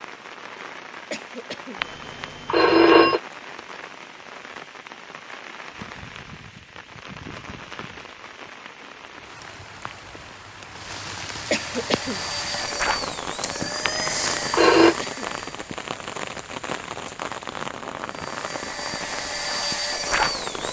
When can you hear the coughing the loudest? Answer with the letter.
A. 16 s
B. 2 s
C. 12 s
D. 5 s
C.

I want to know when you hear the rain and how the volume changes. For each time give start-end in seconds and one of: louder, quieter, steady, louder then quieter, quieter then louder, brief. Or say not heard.
0.0-20.6 louder.